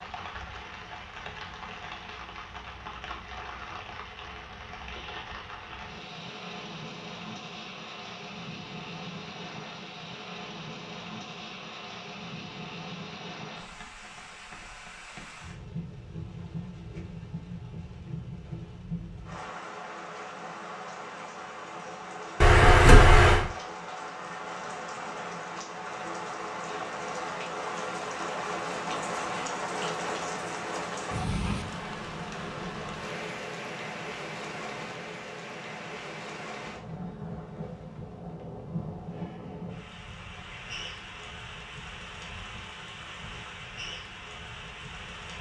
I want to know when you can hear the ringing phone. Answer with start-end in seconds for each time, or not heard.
22.4-23.4.